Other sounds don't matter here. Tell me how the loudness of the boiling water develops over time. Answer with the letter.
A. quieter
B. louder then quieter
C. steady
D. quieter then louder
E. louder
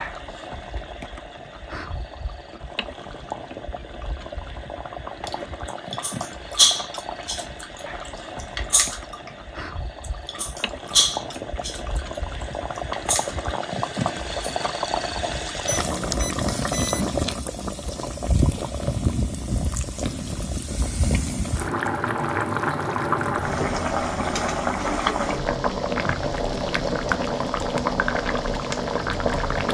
E.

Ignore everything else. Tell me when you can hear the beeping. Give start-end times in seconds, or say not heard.
15.7-17.1.